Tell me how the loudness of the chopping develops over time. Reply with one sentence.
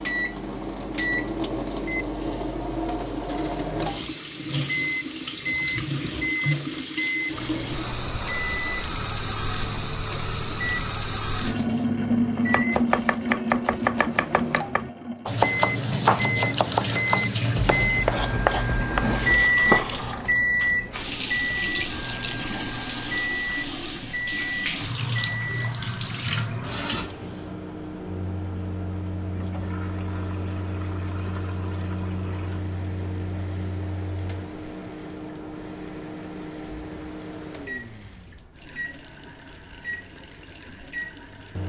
The loudness of the chopping stays about the same.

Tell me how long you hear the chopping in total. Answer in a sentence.
The chopping can be heard for 8 seconds in total.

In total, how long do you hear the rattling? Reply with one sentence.
You can hear the rattling for 2 seconds altogether.